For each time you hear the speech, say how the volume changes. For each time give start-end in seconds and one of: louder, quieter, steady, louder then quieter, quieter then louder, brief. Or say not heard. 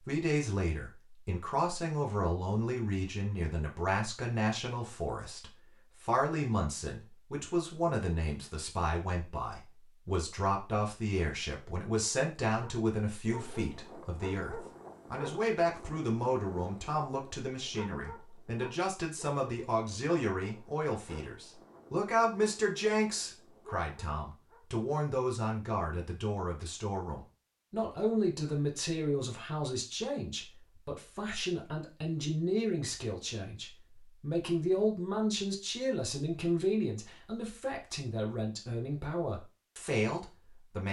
0.0-40.8 steady.